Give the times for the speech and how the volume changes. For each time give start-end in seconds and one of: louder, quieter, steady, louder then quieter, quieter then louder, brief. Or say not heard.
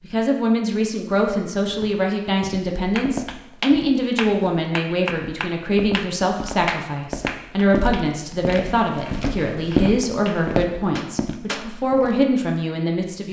0.0-13.2 steady.